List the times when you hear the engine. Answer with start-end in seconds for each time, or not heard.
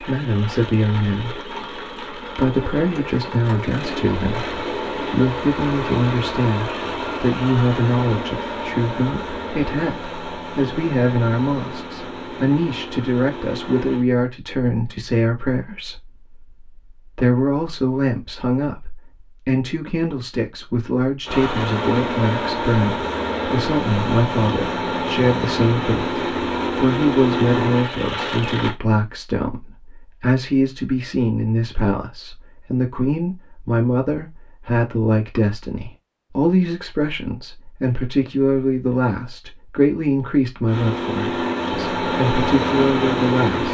0.0-14.1, 21.2-28.8, 40.6-43.7.